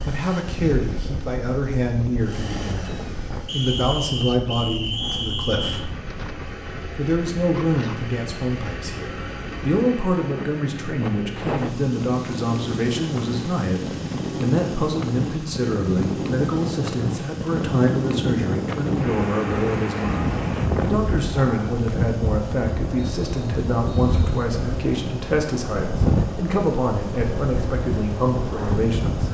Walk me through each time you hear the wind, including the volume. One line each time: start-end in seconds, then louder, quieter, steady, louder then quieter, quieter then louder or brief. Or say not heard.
0.0-29.2 louder.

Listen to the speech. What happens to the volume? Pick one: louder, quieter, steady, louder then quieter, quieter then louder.
steady.